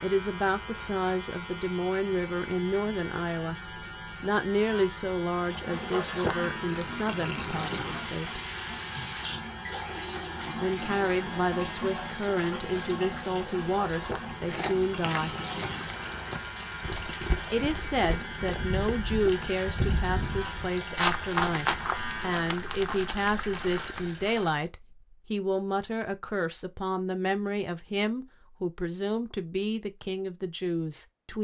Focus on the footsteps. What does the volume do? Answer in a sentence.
The loudness of the footsteps goes up, then down.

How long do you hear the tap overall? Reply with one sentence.
You can hear the tap for 19 seconds altogether.